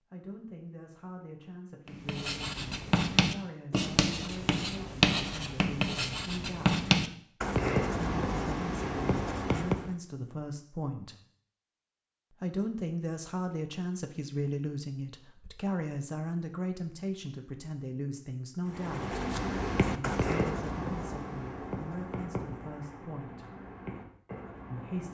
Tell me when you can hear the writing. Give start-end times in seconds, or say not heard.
1.9-9.9, 18.7-25.0.